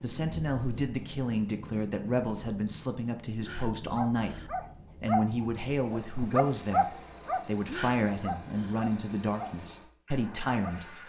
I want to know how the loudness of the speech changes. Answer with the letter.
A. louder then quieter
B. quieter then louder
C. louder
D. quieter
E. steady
E.